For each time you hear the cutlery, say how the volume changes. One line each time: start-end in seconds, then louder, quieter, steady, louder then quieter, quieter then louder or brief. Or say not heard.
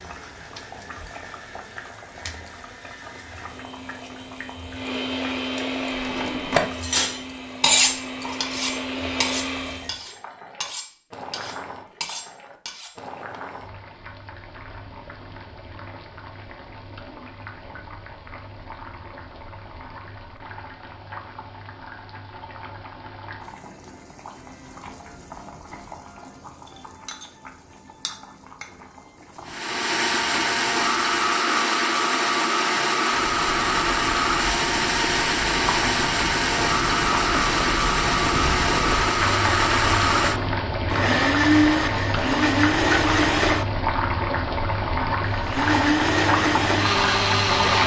6.0-12.9 quieter.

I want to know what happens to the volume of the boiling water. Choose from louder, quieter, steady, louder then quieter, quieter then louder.
louder.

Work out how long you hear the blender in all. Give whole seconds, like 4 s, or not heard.
27 s.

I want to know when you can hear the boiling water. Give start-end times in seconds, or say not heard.
0.0-47.8.